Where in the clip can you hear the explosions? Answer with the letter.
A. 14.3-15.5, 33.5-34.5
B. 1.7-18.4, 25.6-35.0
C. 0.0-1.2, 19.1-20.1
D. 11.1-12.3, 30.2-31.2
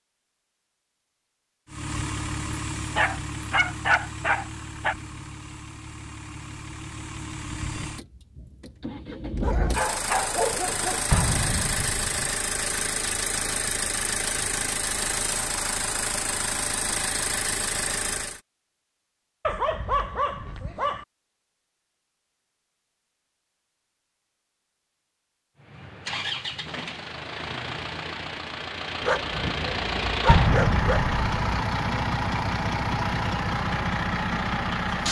D.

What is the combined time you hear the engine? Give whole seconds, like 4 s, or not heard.
26 s.